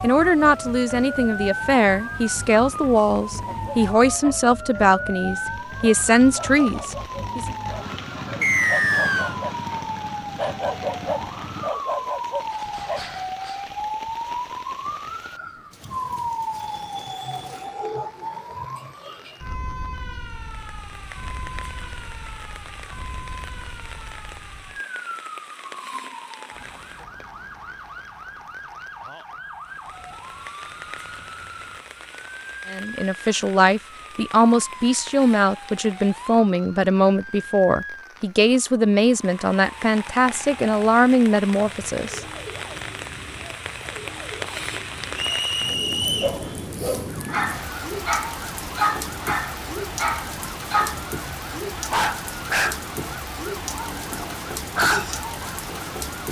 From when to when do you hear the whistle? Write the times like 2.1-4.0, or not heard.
8.4-9.3, 45.1-46.4.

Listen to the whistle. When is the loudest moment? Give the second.
9 s.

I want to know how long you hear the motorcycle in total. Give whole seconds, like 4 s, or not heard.
not heard.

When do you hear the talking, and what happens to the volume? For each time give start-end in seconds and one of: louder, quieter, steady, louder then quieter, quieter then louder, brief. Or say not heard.
0.0-7.5 steady
32.7-42.2 steady.